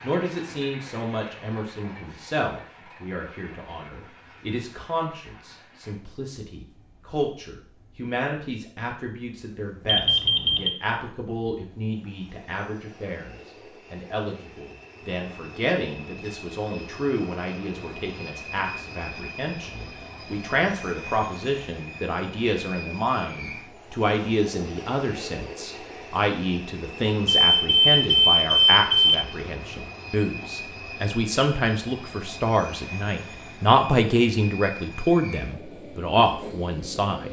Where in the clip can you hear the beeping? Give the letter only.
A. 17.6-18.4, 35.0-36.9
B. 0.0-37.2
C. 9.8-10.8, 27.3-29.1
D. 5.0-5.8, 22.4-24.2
C.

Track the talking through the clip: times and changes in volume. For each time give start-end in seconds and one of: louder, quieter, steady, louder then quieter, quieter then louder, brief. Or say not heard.
0.0-37.2 louder.